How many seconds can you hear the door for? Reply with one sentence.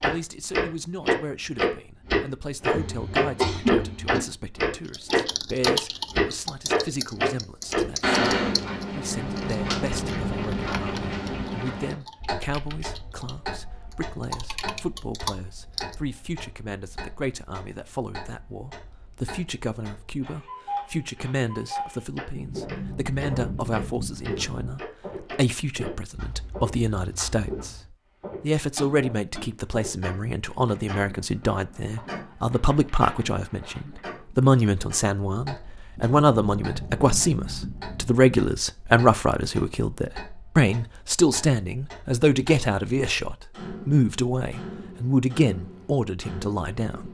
The door can be heard for 7 seconds in total.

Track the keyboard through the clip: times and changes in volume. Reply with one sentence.
The keyboard can be heard from 4.8 to 15.9 s, getting quieter then louder.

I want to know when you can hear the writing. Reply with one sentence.
The writing can't be heard in this clip.